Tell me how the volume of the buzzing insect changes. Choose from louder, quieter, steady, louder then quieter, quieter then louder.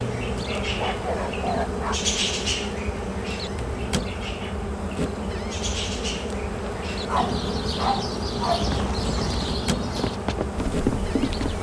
steady.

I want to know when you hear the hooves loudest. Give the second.
11 s.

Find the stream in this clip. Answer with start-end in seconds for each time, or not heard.
not heard.